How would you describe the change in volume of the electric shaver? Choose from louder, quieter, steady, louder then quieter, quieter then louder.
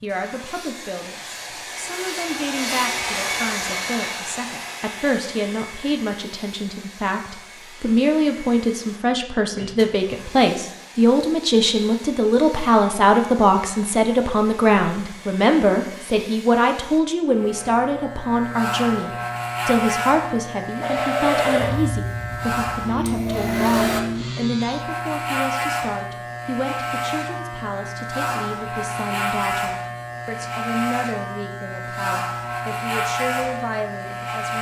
steady.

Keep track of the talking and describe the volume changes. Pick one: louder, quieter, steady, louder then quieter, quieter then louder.
louder then quieter.